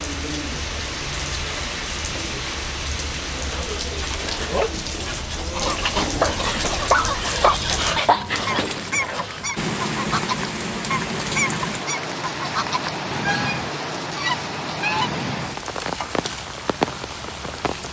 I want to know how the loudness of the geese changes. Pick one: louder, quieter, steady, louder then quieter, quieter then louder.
steady.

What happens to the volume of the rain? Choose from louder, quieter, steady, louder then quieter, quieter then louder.
steady.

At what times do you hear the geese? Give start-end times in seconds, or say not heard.
5.2-15.1.